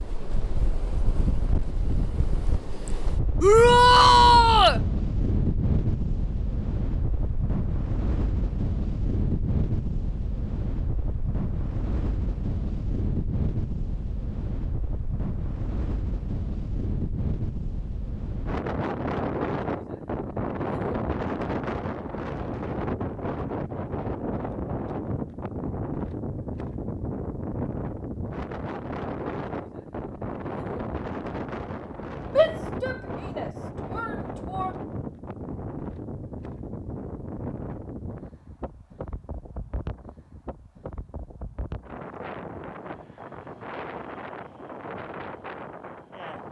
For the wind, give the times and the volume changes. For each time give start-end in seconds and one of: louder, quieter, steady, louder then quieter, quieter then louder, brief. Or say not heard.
0.0-46.4 quieter.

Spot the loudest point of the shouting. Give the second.
4 s.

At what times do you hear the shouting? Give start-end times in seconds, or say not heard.
3.4-4.8, 32.4-34.7.